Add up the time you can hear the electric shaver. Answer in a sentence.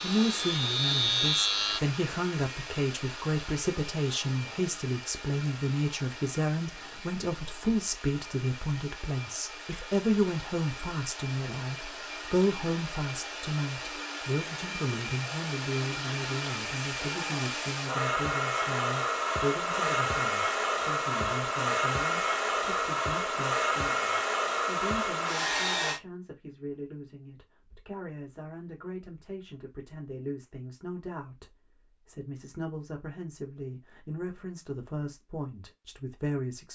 The electric shaver can be heard for 2 seconds in total.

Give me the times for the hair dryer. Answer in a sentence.
You can hear the hair dryer from 0.0 to 26.0 s.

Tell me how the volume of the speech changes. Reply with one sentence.
The loudness of the speech goes down.